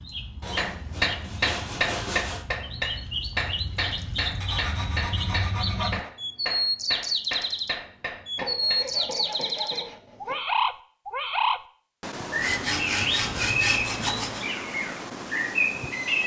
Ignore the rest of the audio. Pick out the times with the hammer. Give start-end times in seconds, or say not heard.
0.6-9.0.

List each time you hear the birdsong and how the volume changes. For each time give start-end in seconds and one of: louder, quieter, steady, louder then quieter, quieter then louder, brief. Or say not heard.
0.0-16.2 louder.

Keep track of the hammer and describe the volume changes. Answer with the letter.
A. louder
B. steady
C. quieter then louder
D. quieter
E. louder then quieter
D.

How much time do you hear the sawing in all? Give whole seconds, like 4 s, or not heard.
8 s.